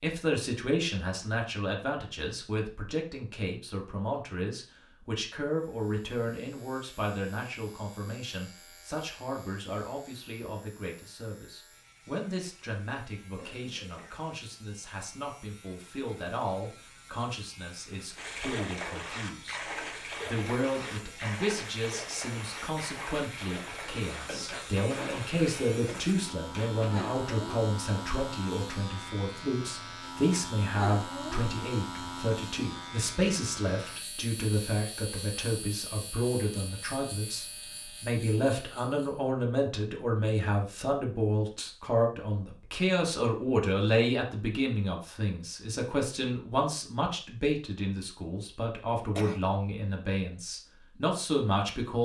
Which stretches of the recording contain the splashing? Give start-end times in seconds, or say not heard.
18.1-27.1.